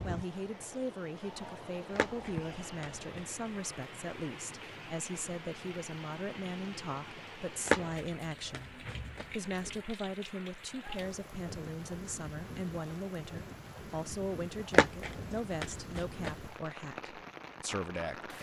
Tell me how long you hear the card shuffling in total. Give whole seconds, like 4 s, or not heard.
5 s.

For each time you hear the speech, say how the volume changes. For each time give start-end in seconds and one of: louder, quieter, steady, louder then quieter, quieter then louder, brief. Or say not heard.
0.0-18.3 steady.